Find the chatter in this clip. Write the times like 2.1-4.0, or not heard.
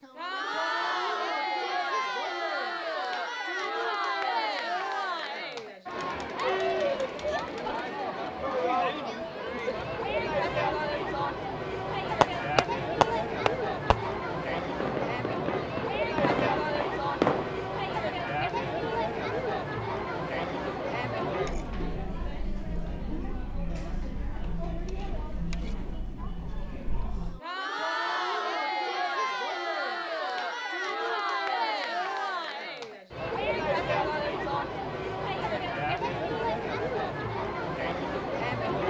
0.0-38.8.